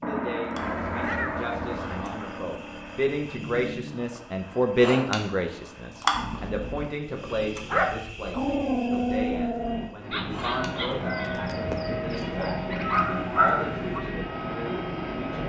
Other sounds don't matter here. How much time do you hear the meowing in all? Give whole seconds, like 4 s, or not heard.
4 s.